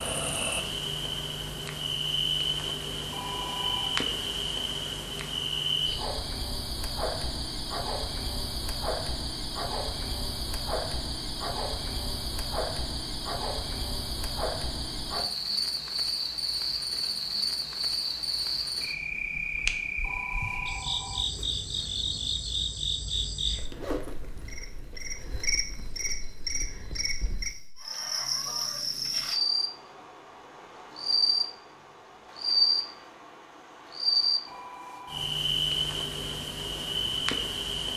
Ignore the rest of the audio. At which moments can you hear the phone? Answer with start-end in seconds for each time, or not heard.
3.1-4.0, 20.0-22.4, 34.5-35.4.